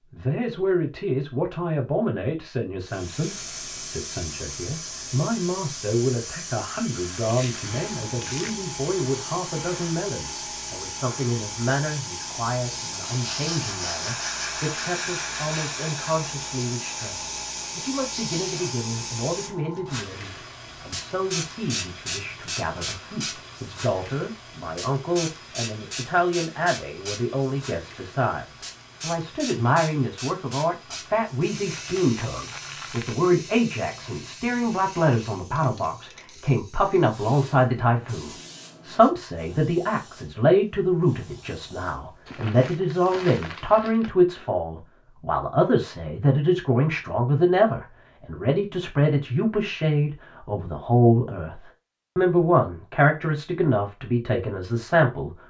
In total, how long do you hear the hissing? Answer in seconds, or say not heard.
41 s.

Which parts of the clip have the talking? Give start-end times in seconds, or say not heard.
0.1-55.4.